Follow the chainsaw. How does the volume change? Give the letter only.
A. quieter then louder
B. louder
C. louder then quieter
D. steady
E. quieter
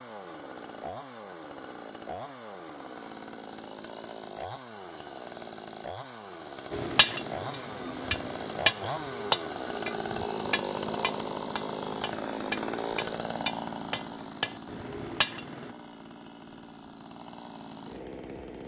C.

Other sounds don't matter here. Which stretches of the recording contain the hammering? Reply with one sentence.
You can hear the hammering from 6.7 to 15.7 s.